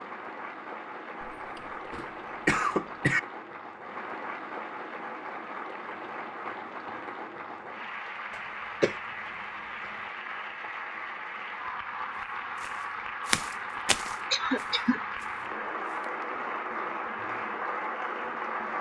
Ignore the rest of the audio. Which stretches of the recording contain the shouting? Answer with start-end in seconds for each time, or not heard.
not heard.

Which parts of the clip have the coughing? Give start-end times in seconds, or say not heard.
1.2-3.2, 8.3-8.9, 14.3-15.0.